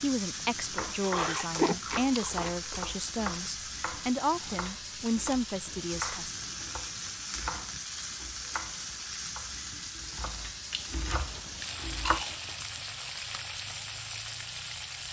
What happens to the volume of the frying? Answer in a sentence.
The volume of the frying stays about the same.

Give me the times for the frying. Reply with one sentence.
The frying can be heard from 0.0 to 15.0 s.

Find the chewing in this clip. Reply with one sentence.
You can hear the chewing from 1.0 to 2.5 s and from 10.7 to 12.6 s.